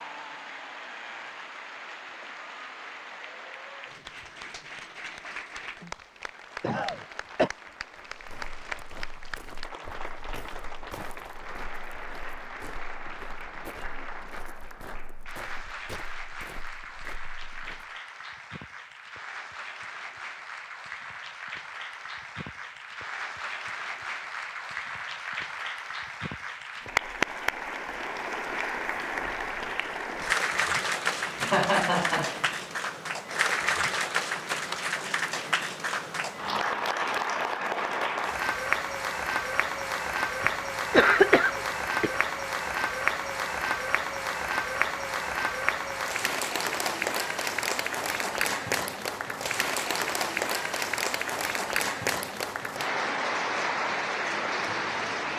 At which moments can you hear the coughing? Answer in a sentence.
The coughing can be heard from 5.8 to 7.5 s, from 31.2 to 32.5 s and from 40.4 to 42.1 s.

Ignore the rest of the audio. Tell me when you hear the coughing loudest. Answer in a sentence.
The loudest moment of the coughing is at 41 seconds.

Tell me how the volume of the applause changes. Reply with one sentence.
The volume of the applause goes up.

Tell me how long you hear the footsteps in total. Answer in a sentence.
The footsteps can be heard for 10 seconds in total.